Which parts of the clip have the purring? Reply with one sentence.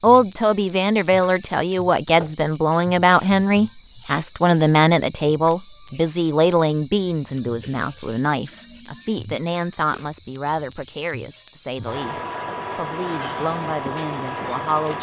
The purring can't be heard in this clip.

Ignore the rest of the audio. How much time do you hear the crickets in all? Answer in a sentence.
The crickets can be heard for 15 seconds in total.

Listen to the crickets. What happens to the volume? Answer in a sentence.
The loudness of the crickets stays about the same.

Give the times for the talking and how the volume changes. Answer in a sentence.
You can hear the talking from 0.0 to 14.9 s, getting quieter.